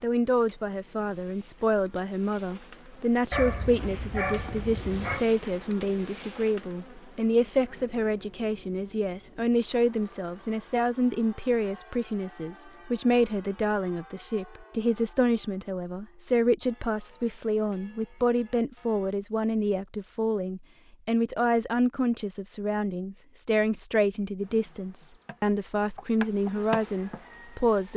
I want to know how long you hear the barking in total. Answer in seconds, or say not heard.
2 s.